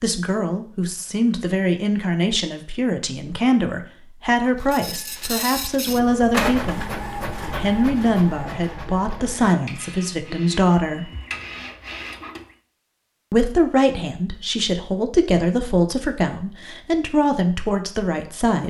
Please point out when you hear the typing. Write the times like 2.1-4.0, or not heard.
not heard.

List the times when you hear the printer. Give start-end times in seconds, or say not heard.
4.6-12.6.